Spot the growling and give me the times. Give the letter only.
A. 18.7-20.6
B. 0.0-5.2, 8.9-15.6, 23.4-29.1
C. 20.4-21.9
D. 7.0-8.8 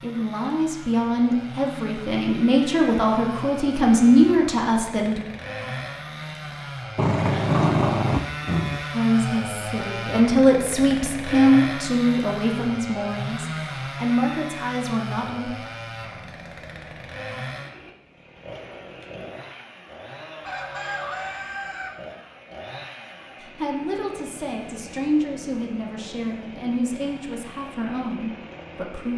D.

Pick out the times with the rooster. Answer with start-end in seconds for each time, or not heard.
20.4-21.9.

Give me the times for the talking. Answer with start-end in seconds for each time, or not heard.
0.0-5.2, 8.9-15.6, 23.4-29.1.